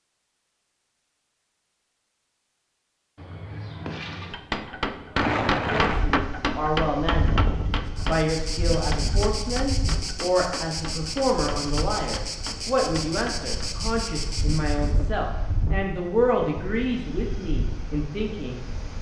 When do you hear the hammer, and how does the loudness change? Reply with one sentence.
The hammer can be heard from 3.9 to 13.7 s, getting quieter.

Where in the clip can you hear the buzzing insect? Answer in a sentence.
You can hear the buzzing insect from 7.8 to 14.9 s.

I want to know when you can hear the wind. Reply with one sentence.
You can hear the wind from 5.2 to 18.9 s.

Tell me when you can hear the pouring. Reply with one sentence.
The pouring can be heard from 3.1 to 4.4 s.